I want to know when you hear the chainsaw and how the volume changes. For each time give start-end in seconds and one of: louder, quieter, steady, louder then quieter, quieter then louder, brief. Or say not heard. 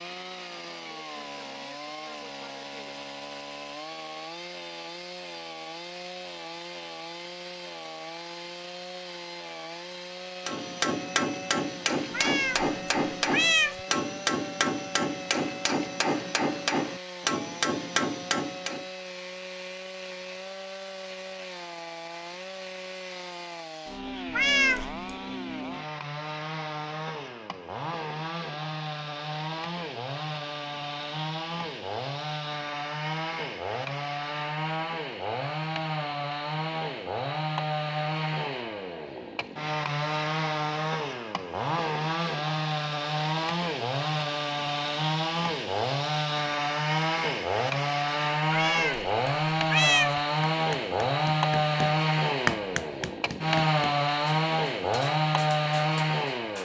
0.0-56.6 louder.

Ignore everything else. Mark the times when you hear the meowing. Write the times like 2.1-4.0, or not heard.
12.1-12.7, 13.3-13.8, 24.3-25.1, 48.5-50.2.